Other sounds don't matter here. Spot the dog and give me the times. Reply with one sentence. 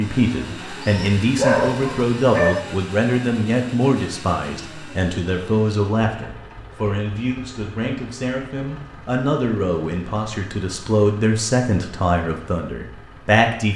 The dog can be heard from 0.8 to 2.6 s.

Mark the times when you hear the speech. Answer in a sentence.
You can hear the speech from 0.0 to 13.7 s.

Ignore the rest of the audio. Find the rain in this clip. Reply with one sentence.
You can't hear the rain here.